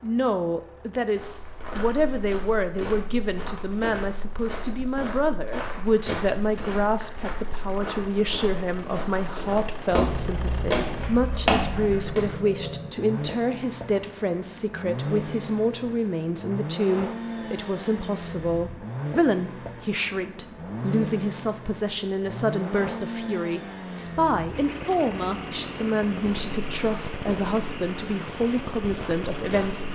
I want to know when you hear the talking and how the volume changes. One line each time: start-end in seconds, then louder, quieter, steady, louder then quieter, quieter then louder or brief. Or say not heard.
0.0-29.9 steady.